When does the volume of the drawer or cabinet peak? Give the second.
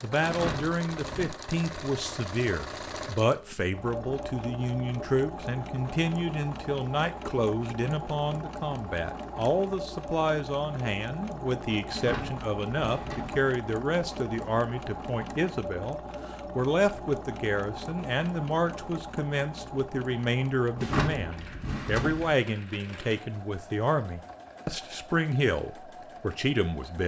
21 s.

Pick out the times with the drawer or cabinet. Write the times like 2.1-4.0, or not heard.
0.2-1.3, 11.9-13.5, 20.8-22.4.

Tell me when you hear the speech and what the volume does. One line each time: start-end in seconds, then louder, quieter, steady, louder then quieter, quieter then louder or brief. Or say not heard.
0.0-27.0 steady.